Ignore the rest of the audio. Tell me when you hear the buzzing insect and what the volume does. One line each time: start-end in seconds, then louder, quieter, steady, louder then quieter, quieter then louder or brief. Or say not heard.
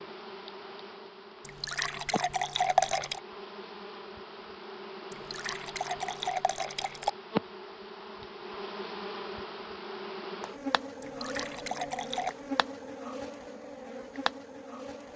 0.0-15.1 louder.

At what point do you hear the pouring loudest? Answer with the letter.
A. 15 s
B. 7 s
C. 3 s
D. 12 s
C.